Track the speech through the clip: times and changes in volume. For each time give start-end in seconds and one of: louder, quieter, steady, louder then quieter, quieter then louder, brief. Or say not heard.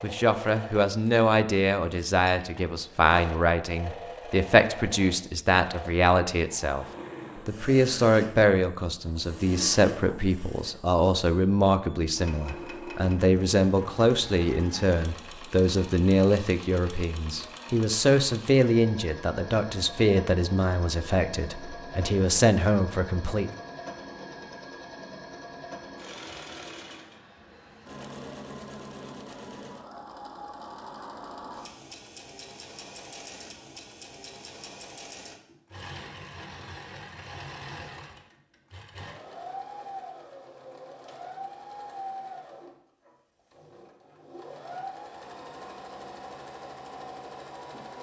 0.0-23.5 steady.